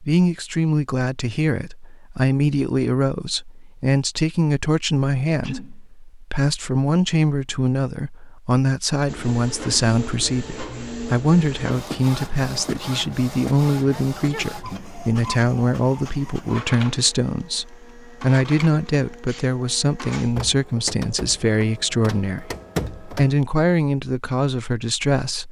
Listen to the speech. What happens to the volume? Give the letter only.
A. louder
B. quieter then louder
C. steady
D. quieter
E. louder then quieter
C.